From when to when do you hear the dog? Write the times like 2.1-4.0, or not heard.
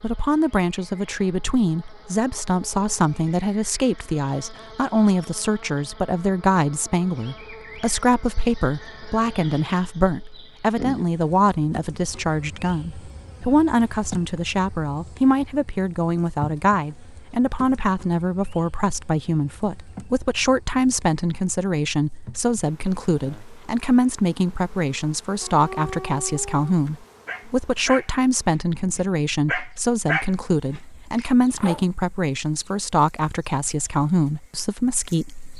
25.4-31.9.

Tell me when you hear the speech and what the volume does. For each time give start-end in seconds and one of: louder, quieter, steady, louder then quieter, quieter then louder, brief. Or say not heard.
0.0-35.5 steady.